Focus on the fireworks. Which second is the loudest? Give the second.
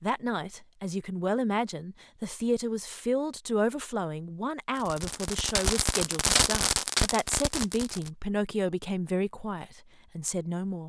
6 s.